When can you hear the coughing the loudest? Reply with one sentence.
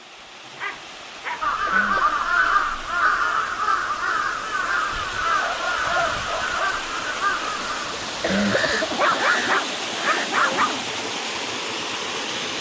The volume of the coughing peaks at 8 seconds.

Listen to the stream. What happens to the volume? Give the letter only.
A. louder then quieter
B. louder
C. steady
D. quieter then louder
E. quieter
B.